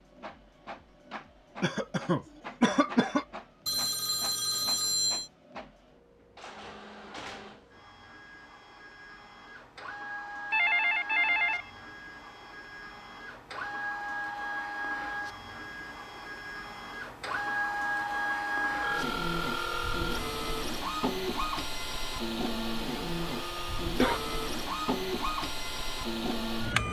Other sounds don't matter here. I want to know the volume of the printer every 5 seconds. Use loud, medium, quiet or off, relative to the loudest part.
quiet, quiet, medium, loud, loud, loud.